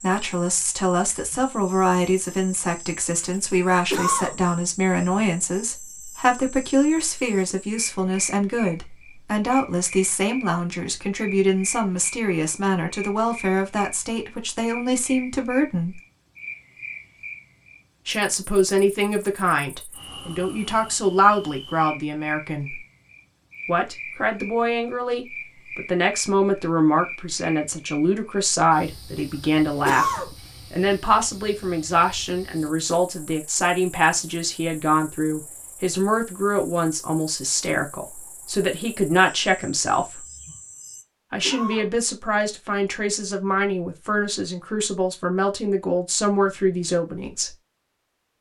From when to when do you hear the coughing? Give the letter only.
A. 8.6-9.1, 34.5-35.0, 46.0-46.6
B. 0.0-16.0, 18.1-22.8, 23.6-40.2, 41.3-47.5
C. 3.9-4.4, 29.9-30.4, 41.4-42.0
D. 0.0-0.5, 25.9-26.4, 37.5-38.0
C.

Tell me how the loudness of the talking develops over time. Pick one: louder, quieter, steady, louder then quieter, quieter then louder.
steady.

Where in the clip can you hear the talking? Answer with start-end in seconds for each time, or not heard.
0.0-16.0, 18.1-22.8, 23.6-40.2, 41.3-47.5.